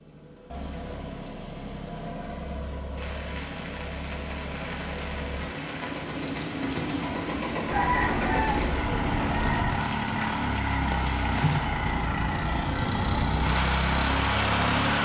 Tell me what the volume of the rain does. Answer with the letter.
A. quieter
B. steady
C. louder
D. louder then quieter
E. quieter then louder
C.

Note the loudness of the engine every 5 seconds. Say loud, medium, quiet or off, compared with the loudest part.
medium, loud, loud.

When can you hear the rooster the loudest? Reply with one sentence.
The loudest moment of the rooster is at 8 seconds.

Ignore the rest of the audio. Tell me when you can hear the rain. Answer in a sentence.
You can hear the rain from 3.0 to 15.0 s.